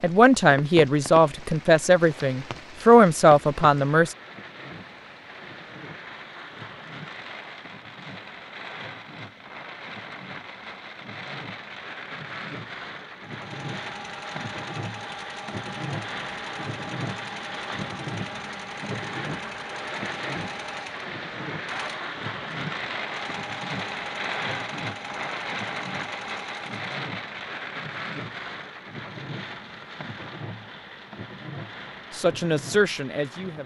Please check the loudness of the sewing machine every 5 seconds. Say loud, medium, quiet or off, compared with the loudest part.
off, off, loud, loud, loud, loud, off.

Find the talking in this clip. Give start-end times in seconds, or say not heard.
0.0-4.2, 32.1-33.6.